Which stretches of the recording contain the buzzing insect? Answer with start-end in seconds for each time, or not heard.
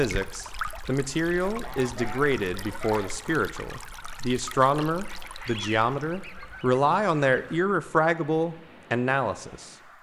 not heard.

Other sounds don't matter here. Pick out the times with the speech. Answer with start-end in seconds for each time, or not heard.
0.0-9.8.